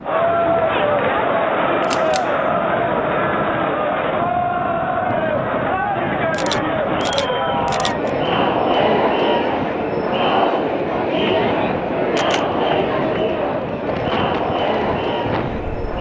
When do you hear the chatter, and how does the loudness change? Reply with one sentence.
You can hear the chatter from 0.0 to 15.9 s, at a steady volume.